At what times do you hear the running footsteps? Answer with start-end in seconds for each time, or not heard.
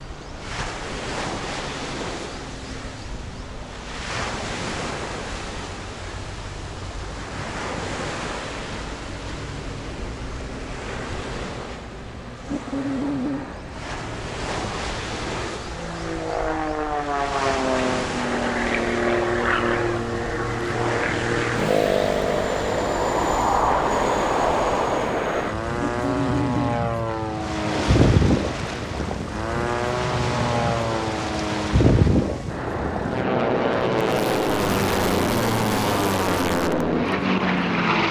not heard.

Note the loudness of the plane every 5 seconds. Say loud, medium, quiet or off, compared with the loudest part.
quiet, quiet, quiet, loud, loud, loud, loud, loud.